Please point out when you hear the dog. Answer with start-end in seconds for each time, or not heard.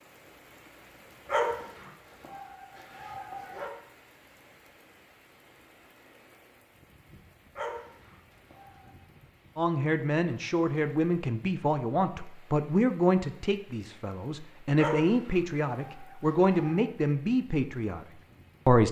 1.2-3.7, 7.5-8.9, 14.8-16.9.